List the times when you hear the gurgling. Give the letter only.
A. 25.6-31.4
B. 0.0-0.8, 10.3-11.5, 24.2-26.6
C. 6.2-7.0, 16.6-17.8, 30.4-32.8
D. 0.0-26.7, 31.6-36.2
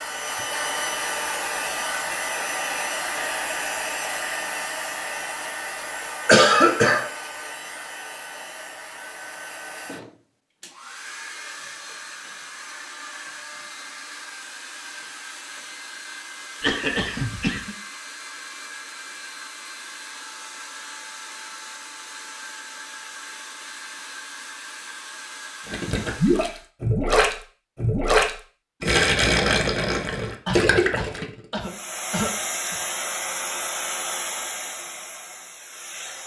A.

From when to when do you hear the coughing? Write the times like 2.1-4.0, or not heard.
6.2-7.0, 16.6-17.8, 30.4-32.8.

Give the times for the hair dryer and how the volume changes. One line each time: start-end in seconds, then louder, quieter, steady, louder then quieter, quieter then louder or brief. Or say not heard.
0.0-26.7 quieter
31.6-36.2 quieter.